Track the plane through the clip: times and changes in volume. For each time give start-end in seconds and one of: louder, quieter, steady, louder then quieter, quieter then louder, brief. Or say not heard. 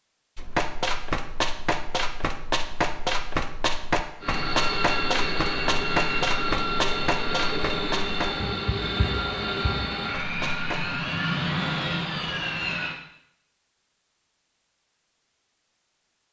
4.2-12.9 steady.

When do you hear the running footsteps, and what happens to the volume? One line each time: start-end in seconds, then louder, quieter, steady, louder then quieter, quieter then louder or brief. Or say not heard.
0.3-10.9 quieter.